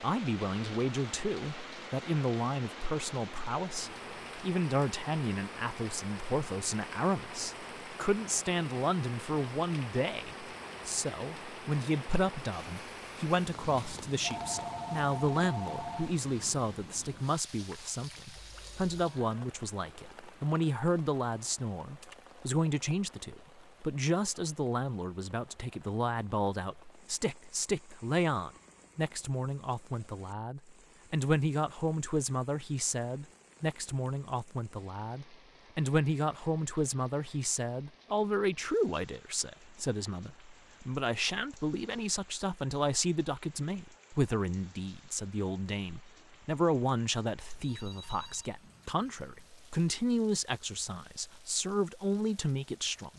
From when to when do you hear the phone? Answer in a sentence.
You can hear the phone from 14.2 to 16.1 s, from 18.4 to 18.9 s and from 47.5 to 48.5 s.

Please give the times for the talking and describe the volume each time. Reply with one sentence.
You can hear the talking from 0.0 to 53.1 s, at a steady volume.